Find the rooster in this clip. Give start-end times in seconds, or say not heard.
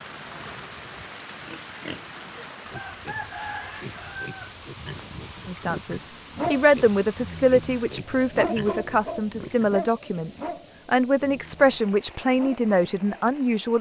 2.7-4.5.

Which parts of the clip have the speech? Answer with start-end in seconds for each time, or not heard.
5.5-13.7.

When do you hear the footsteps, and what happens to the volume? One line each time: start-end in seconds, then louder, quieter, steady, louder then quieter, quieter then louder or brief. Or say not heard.
not heard.